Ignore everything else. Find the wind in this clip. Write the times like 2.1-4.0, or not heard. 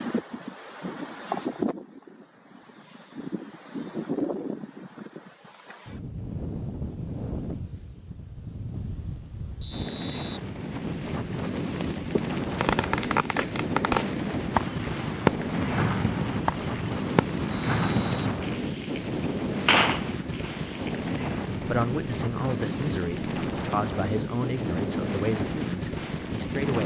0.0-26.8.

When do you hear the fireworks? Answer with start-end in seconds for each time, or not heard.
11.8-21.2.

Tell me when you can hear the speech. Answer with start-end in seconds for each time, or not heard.
21.6-26.8.